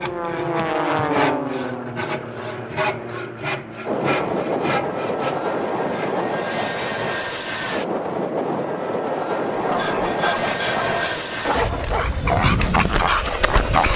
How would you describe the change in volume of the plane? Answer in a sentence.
The loudness of the plane stays about the same.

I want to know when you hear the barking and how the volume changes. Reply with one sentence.
You can hear the barking from 9.5 to 13.9 s, getting louder.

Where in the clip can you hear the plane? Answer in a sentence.
You can hear the plane from 0.0 to 13.9 s.